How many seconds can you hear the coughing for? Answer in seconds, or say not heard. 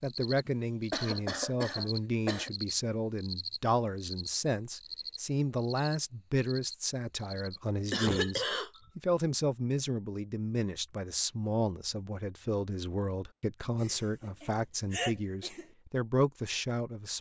5 s.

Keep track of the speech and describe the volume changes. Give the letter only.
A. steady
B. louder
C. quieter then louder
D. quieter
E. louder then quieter
A.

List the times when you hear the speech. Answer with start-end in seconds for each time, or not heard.
0.0-17.1.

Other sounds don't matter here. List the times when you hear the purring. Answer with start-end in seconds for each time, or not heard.
not heard.